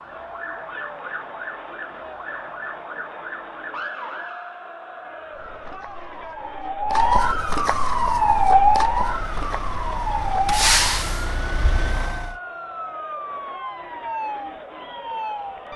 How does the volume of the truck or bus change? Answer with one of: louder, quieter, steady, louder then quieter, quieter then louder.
louder then quieter.